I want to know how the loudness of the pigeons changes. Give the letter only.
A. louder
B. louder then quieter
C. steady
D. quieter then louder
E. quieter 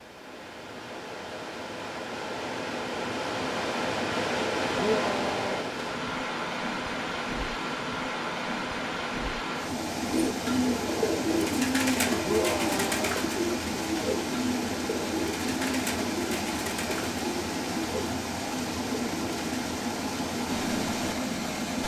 E.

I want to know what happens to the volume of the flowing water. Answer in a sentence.
The loudness of the flowing water stays about the same.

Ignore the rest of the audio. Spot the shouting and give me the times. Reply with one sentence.
The shouting can be heard from 4.8 to 5.6 s and from 12.2 to 13.0 s.